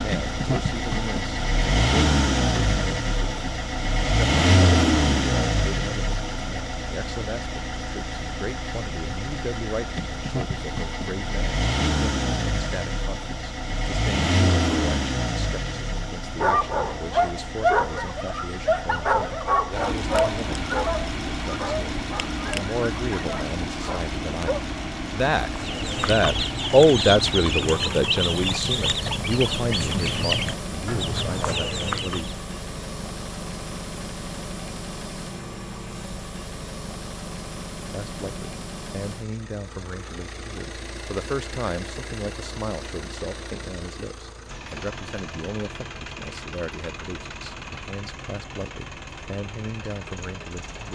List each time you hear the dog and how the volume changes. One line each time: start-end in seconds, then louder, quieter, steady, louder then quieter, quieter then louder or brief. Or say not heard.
16.4-24.6 quieter.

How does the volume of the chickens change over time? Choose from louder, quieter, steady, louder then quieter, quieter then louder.
steady.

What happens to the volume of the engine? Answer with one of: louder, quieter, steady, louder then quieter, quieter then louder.
quieter.